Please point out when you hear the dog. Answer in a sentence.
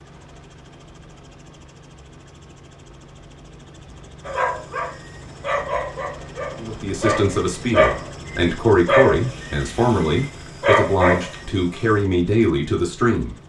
The dog can be heard from 4.2 to 11.8 s.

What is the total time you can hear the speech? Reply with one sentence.
You can hear the speech for 7 seconds altogether.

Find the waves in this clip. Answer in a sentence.
The waves can't be heard in this clip.